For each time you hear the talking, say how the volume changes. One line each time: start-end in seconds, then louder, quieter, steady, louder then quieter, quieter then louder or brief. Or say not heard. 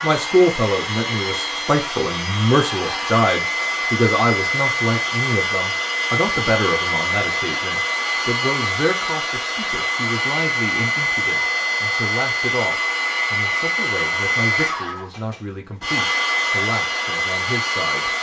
0.0-18.1 quieter.